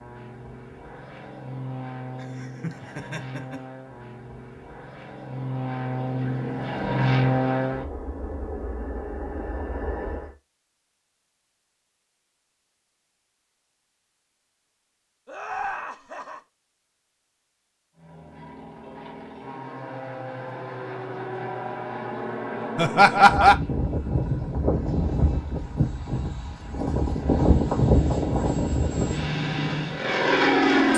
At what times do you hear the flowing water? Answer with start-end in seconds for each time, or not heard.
not heard.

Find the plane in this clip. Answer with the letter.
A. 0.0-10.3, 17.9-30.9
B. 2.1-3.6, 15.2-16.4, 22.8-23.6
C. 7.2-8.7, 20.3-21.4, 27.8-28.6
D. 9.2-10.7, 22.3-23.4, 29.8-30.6
A.